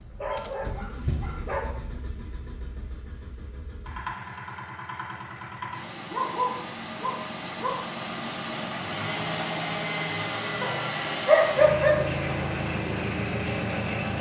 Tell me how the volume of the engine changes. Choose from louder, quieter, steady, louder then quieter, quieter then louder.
louder.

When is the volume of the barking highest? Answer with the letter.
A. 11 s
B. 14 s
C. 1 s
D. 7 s
A.